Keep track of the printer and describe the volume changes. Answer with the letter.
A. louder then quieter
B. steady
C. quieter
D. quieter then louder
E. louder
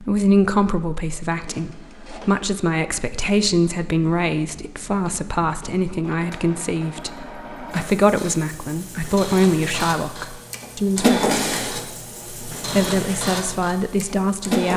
A.